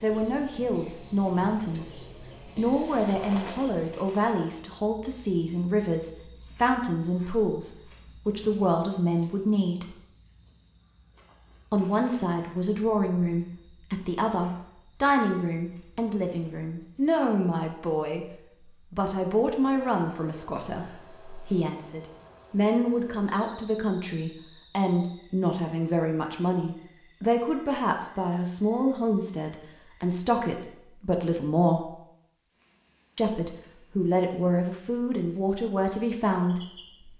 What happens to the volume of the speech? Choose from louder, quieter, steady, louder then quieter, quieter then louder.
steady.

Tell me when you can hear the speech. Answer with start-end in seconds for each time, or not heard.
0.0-9.9, 11.7-31.9, 33.1-37.1.